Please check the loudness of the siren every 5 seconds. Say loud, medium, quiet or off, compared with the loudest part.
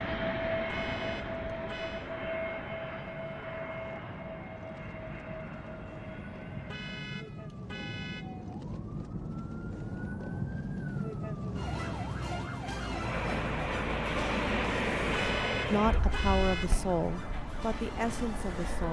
medium, medium, loud, medium.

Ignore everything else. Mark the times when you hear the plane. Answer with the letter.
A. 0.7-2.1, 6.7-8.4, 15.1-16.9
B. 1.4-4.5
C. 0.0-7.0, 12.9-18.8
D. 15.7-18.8
C.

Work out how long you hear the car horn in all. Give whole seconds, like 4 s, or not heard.
5 s.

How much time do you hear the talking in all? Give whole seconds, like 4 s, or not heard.
3 s.